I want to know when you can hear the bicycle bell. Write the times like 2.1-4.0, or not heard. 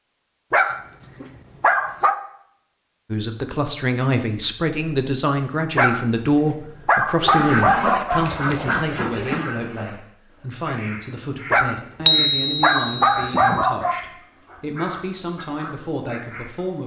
12.1-13.6.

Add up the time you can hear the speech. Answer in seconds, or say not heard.
14 s.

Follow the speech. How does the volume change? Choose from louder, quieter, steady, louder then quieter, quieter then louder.
quieter.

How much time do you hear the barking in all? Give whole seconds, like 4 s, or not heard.
7 s.